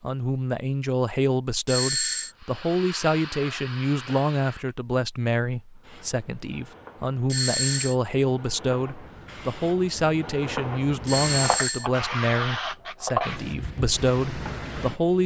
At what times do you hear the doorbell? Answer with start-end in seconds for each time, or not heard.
1.6-2.3, 7.2-8.0, 11.1-11.8.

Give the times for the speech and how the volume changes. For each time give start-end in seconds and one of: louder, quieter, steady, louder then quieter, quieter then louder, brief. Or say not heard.
0.0-15.2 steady.